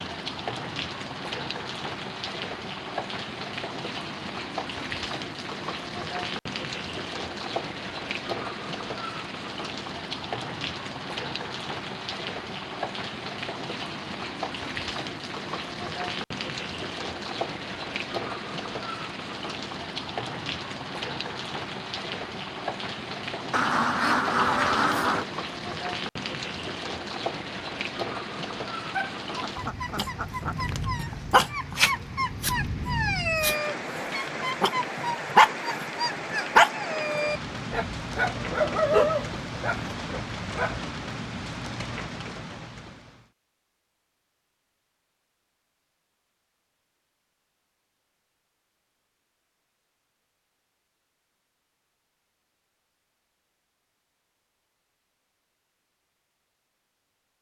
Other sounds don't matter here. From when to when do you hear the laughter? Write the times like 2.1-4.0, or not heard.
not heard.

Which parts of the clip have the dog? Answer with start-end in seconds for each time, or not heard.
28.9-40.7.